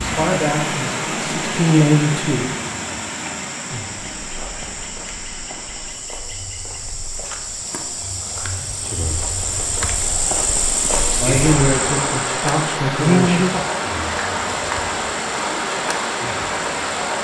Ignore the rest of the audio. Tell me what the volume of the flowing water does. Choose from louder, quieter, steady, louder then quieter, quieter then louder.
quieter then louder.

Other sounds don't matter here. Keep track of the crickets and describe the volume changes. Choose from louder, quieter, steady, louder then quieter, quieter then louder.
louder then quieter.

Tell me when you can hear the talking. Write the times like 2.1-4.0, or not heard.
0.0-2.5, 11.2-13.4.